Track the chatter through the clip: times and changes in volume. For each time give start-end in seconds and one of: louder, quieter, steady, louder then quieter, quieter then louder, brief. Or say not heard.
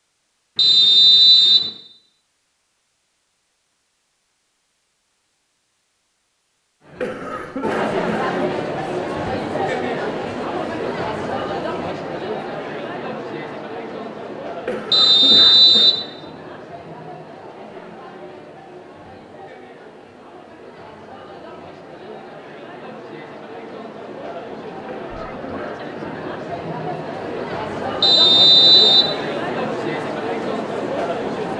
6.8-31.5 quieter then louder.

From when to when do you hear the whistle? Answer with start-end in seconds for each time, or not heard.
0.6-1.7, 14.9-16.0, 28.0-29.1.